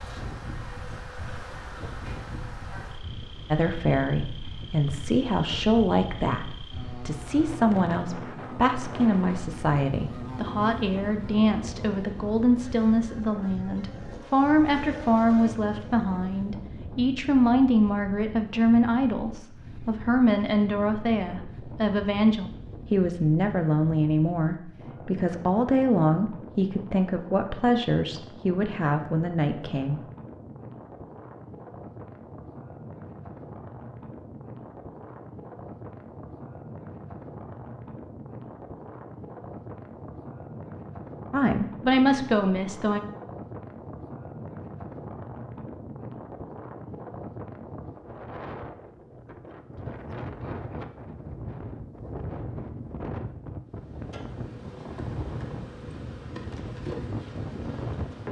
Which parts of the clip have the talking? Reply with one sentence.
You can hear the talking from 3.5 to 30.0 s and from 41.3 to 43.0 s.